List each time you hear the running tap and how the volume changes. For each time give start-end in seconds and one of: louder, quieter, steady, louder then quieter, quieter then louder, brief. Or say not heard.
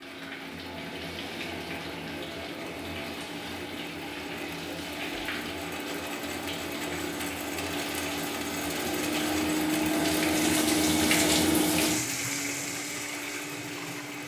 0.0-14.2 louder.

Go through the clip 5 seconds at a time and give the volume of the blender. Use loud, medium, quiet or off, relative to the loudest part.
medium, loud, loud.